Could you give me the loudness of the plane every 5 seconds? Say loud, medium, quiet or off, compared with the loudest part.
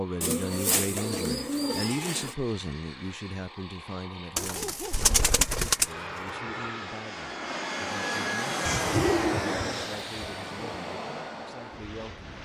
quiet, loud, medium.